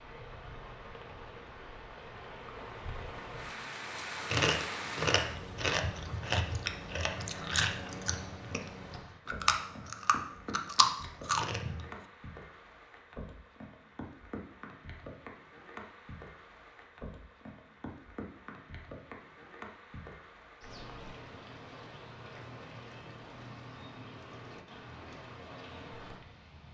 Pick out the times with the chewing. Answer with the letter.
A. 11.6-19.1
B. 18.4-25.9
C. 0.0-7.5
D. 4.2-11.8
D.